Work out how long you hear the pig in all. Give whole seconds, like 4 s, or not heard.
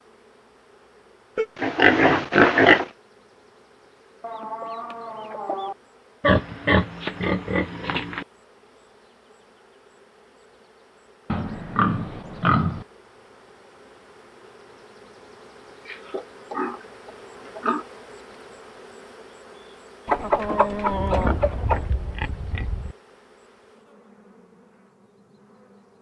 9 s.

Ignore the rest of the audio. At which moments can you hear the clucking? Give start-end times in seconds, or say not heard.
4.2-5.8, 20.1-21.9.